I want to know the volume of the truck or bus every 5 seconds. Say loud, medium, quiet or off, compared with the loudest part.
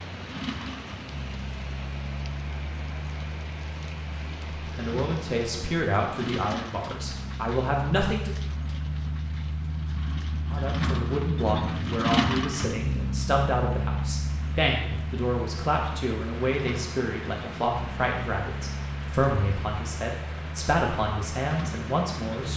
medium, medium, loud, medium, medium.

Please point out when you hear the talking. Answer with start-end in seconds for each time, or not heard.
4.7-8.3, 10.5-22.5.